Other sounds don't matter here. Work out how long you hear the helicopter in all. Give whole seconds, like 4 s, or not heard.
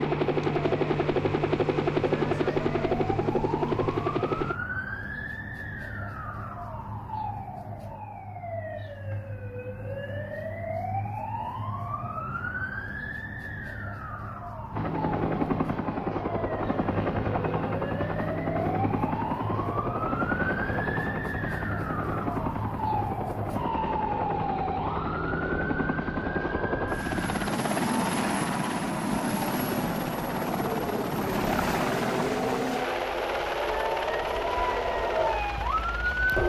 26 s.